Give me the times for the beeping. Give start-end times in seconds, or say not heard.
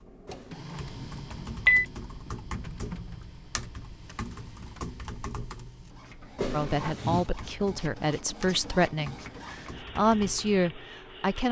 0.2-1.9, 6.3-7.3.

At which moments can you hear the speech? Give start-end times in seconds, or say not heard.
6.5-11.4.